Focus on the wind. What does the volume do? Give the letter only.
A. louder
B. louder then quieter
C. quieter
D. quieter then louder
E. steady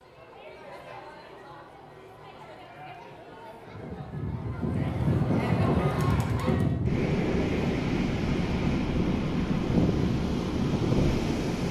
E.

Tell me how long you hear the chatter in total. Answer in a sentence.
The chatter can be heard for 7 seconds in total.